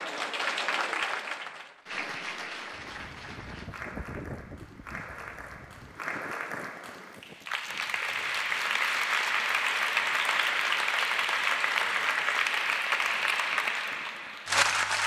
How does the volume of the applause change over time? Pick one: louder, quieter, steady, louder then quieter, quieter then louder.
quieter then louder.